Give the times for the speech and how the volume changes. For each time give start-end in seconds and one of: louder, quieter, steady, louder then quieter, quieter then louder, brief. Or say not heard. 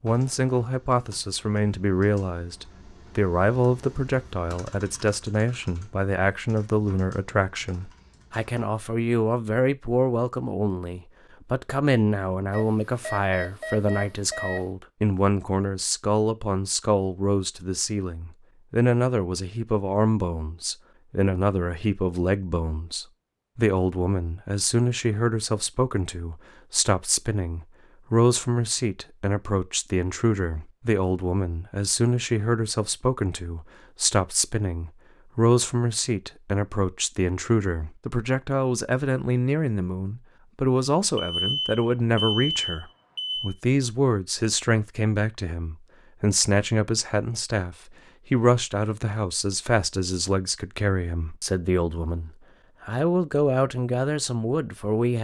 0.0-55.1 steady.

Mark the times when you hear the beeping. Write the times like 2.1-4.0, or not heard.
12.5-14.7, 41.1-43.5.